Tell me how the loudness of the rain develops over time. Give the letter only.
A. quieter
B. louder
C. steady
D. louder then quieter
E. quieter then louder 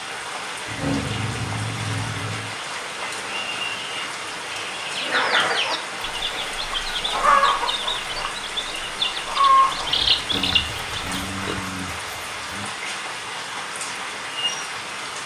C.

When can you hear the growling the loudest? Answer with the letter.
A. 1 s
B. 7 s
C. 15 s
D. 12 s
A.